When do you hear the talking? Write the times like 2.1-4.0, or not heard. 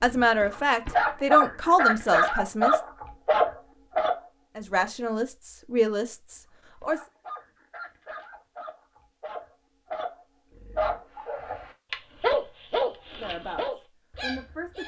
0.0-2.8, 4.5-7.0, 13.1-14.8.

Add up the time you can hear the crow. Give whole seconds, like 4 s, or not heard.
not heard.